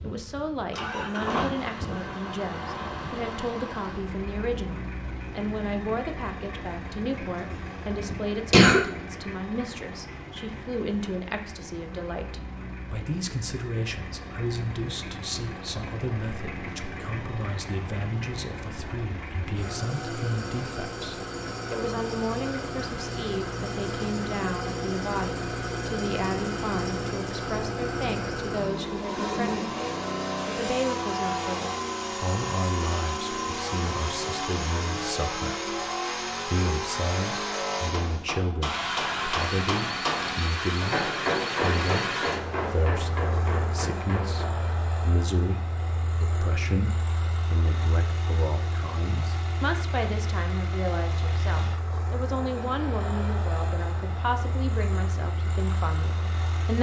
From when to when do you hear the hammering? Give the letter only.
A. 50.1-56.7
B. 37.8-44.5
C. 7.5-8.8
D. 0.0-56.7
B.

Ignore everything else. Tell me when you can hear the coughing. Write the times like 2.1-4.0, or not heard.
7.5-8.8.